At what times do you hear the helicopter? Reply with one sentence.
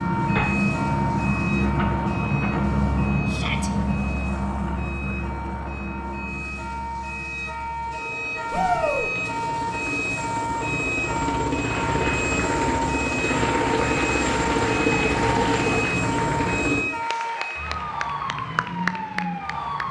The helicopter can be heard from 0.0 to 16.9 s.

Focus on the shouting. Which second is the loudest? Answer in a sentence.
The loudest moment of the shouting is at 9 seconds.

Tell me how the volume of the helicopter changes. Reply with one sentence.
The volume of the helicopter goes down, then up.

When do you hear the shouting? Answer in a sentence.
The shouting can be heard from 3.2 to 3.7 s, from 8.5 to 9.1 s and from 17.1 to 17.5 s.